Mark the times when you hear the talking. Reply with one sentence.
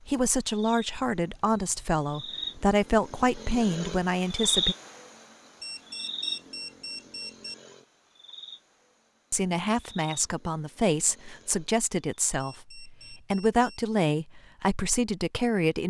The talking can be heard from 0.1 to 4.8 s and from 9.3 to 15.8 s.